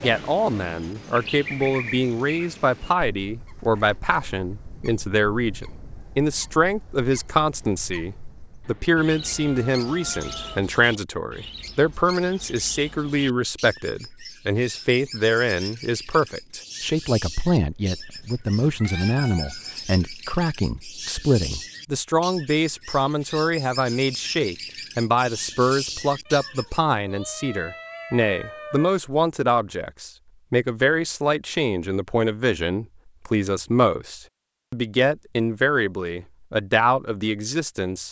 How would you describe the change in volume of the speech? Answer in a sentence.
The volume of the speech stays about the same.